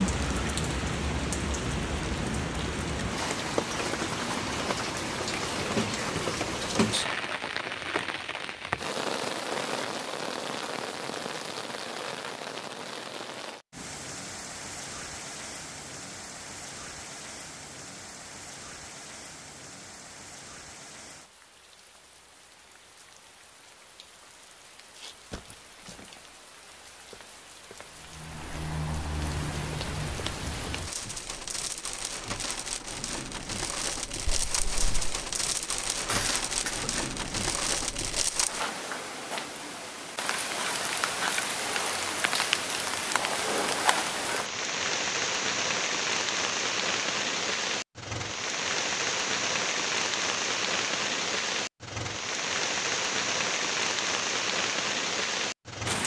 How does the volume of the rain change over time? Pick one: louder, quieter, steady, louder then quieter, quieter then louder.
quieter then louder.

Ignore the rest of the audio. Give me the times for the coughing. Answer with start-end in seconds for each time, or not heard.
36.0-36.9.